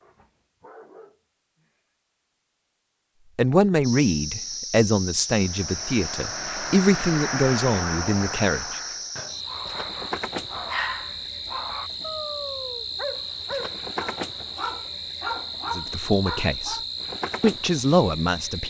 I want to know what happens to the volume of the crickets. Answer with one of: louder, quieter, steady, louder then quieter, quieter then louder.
steady.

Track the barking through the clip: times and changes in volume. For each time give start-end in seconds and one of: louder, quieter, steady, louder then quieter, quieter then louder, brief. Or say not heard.
0.0-1.7 brief
9.4-16.9 steady.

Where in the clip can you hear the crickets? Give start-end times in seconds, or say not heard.
3.8-18.6.